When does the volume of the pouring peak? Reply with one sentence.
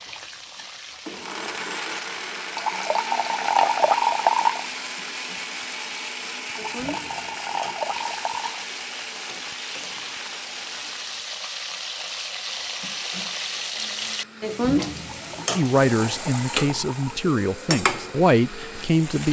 The volume of the pouring peaks at 4 seconds.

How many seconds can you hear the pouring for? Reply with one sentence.
You can hear the pouring for 6 seconds altogether.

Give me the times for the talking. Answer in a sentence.
The talking can be heard from 15.6 to 19.2 s.